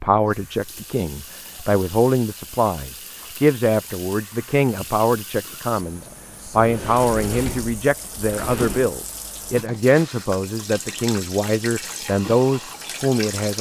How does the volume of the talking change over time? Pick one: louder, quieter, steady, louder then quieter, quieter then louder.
steady.